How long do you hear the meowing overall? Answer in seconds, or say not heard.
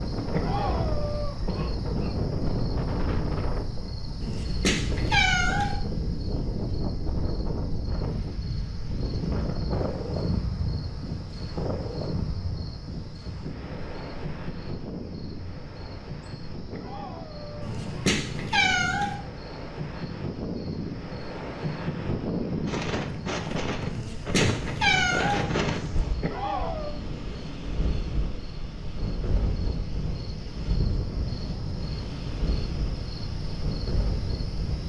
5 s.